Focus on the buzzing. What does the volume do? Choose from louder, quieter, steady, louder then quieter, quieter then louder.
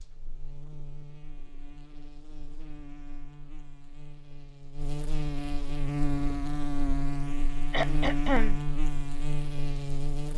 louder.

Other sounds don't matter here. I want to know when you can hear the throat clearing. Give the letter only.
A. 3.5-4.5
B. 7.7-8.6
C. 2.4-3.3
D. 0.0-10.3
B.